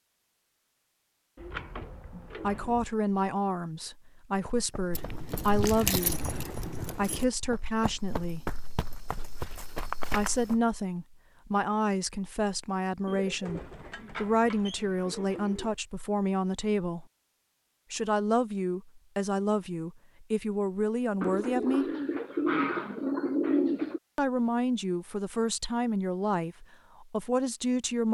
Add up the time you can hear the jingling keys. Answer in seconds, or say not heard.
2 s.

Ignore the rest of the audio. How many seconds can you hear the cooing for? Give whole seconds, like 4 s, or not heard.
7 s.